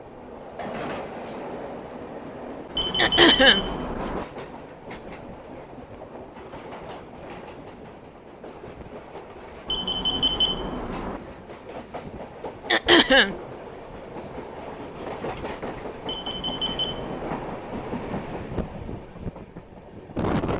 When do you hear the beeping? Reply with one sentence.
The beeping can be heard from 2.8 to 4.2 s, from 9.7 to 11.2 s and from 16.1 to 17.6 s.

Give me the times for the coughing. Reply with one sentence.
You can hear the coughing from 3.0 to 3.6 s and from 12.7 to 13.3 s.